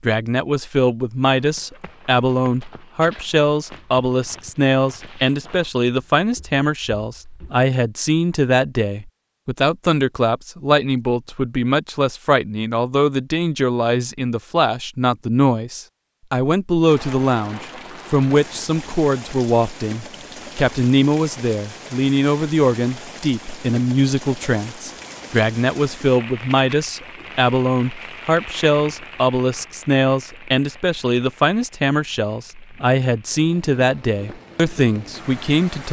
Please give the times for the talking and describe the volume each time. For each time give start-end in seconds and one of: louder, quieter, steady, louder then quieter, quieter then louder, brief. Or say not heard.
0.0-35.8 steady.